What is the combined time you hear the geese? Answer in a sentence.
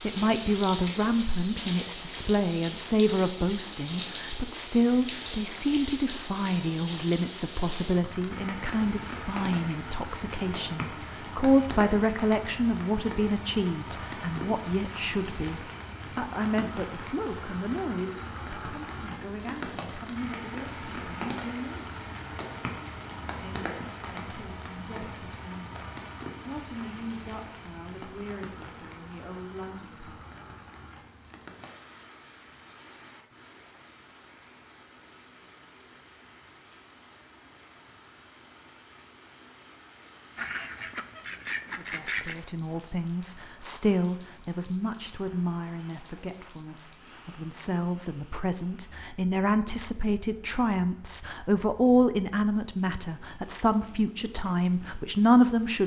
The geese can be heard for 2 seconds in total.